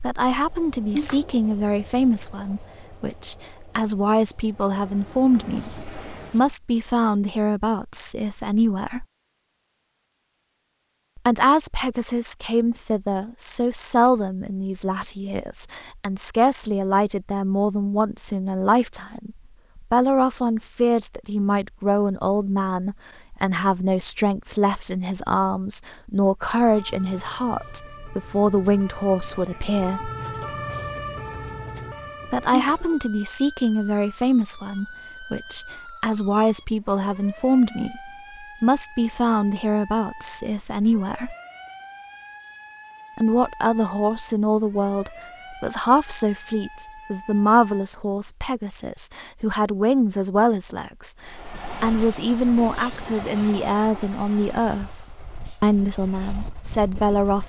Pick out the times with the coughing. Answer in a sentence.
You can hear the coughing from 0.9 to 1.4 s and from 32.5 to 33.0 s.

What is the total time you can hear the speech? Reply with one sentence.
The speech can be heard for 51 seconds in total.